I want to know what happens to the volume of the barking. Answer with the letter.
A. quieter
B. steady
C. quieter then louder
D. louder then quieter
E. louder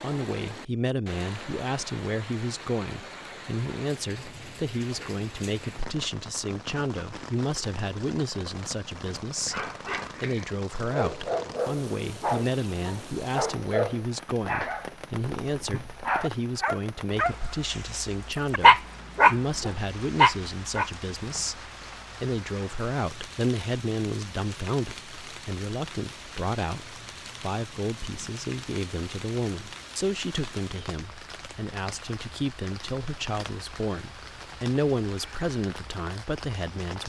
E.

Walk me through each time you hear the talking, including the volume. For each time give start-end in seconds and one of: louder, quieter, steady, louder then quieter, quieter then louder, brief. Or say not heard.
0.0-37.0 steady.